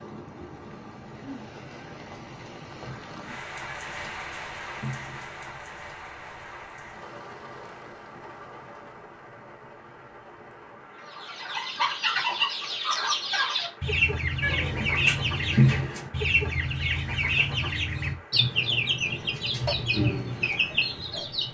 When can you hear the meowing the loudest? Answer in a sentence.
The loudest moment of the meowing is at 16 seconds.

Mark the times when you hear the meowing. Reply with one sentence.
The meowing can be heard from 3.6 to 5.3 s and from 14.4 to 16.1 s.